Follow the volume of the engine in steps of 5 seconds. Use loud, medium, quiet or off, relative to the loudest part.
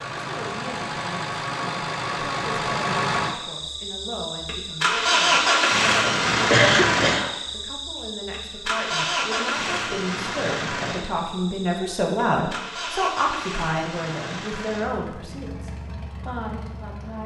medium, loud, medium, quiet.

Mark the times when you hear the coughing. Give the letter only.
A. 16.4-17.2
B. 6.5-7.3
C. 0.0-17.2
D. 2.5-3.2
B.